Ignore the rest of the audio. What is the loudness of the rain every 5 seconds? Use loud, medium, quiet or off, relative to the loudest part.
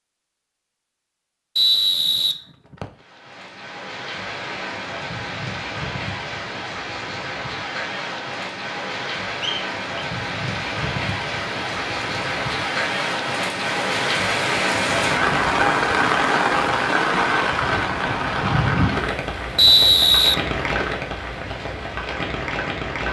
quiet, medium, loud, loud, medium.